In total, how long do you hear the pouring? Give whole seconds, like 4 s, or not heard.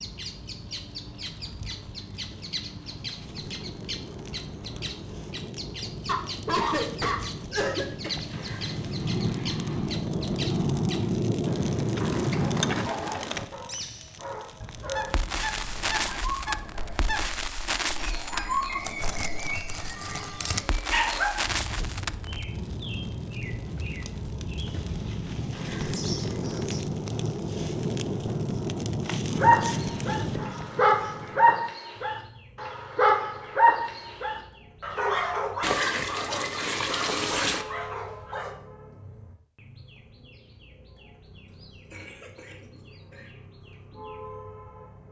5 s.